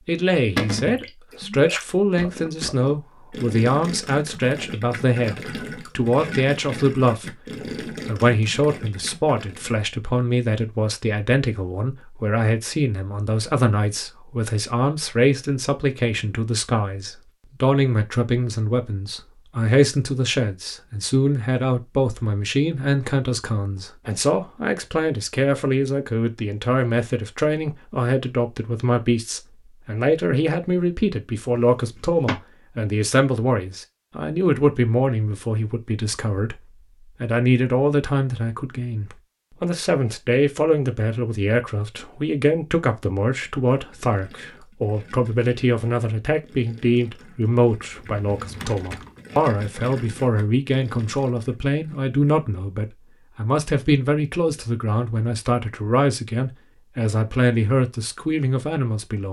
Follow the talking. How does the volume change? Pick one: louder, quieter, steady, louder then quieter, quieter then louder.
steady.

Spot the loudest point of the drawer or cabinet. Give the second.
1 s.